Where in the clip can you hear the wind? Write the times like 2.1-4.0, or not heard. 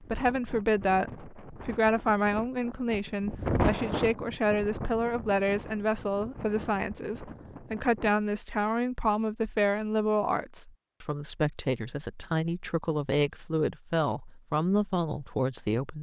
0.0-8.1.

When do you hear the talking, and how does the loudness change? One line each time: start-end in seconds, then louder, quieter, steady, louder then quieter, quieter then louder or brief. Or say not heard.
0.0-15.9 steady.